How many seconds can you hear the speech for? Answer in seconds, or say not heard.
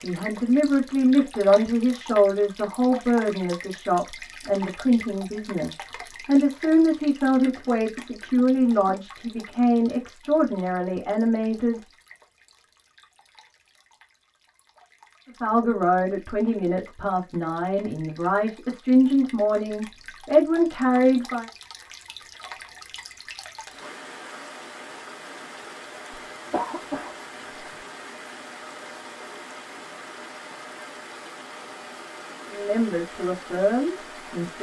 20 s.